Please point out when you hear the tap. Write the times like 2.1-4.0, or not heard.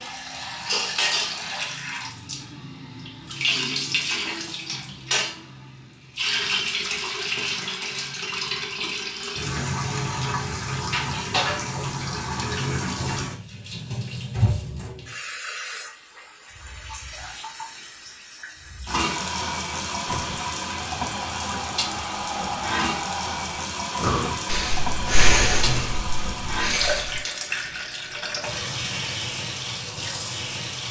0.0-30.8.